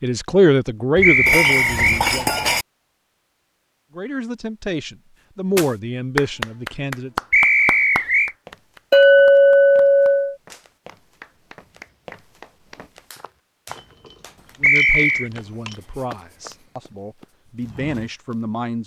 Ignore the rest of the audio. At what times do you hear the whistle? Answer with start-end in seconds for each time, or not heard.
1.0-2.0, 7.3-8.3, 14.6-15.3.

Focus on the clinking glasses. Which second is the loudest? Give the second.
9 s.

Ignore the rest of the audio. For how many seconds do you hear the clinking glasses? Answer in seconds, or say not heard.
5 s.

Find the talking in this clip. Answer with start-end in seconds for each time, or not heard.
0.0-2.4, 4.0-7.1, 14.6-18.8.